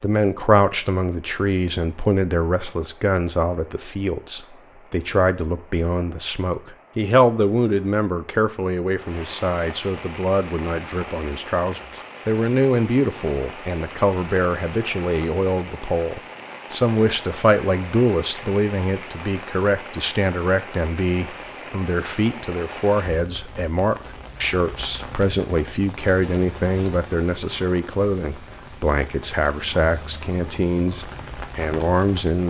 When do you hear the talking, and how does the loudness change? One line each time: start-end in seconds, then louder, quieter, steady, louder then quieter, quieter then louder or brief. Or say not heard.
0.0-32.4 steady.